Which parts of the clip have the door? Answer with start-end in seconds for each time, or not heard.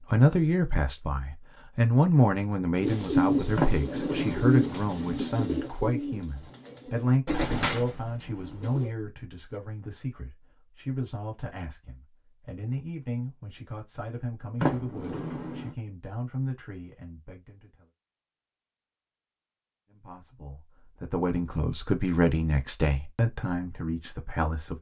3.5-4.8, 14.6-15.8.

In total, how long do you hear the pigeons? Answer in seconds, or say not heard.
6 s.